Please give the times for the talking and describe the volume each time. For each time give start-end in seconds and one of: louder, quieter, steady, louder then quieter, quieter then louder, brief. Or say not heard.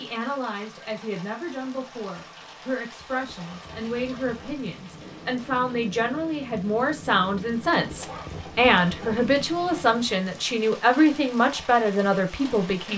0.0-12.9 louder.